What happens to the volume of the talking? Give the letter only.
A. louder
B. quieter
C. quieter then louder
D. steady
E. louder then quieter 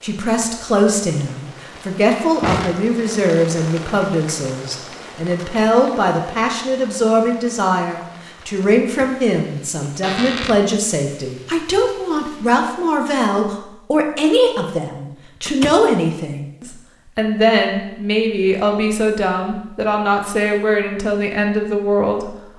D.